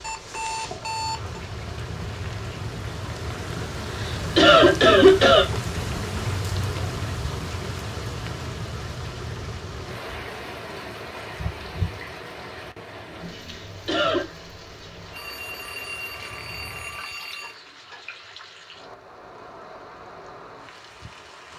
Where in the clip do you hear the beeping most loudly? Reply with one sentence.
The loudest moment of the beeping is at 1 second.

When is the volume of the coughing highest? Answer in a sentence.
The volume of the coughing peaks at 5 seconds.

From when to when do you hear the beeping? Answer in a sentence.
You can hear the beeping from 0.0 to 1.4 s, from 11.3 to 12.0 s and from 15.1 to 17.6 s.